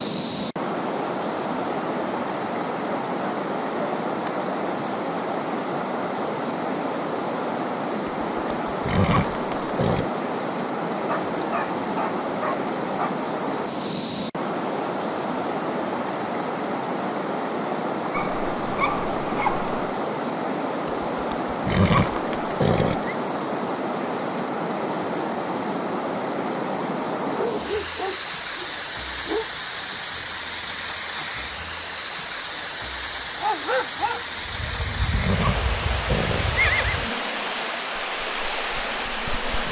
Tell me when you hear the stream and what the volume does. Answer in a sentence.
You can hear the stream from 0.0 to 39.6 s, at a steady volume.